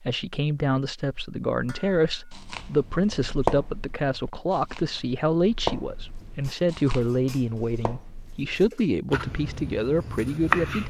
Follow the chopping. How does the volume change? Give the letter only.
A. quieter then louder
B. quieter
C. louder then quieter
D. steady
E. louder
A.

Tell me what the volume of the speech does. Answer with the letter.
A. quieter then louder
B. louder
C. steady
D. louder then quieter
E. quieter
C.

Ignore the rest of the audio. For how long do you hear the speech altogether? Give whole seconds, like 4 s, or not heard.
11 s.